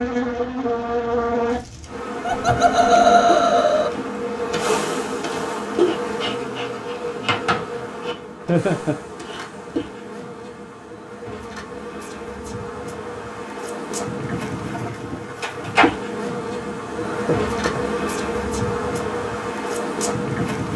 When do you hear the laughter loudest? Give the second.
3 s.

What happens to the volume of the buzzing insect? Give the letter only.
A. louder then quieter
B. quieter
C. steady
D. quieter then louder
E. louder
D.